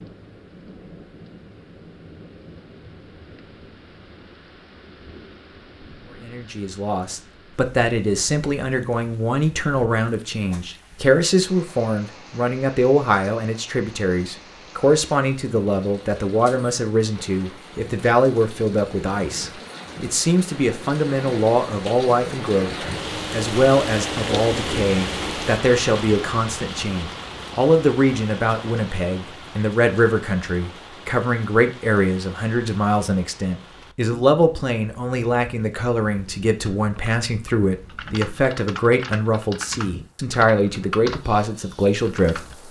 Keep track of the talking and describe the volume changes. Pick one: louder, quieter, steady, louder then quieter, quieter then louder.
steady.